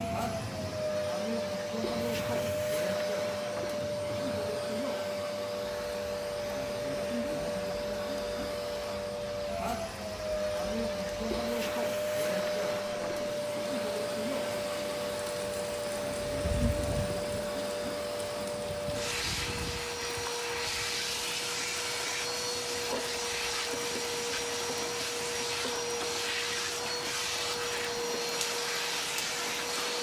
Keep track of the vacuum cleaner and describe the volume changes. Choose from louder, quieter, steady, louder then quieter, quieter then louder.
steady.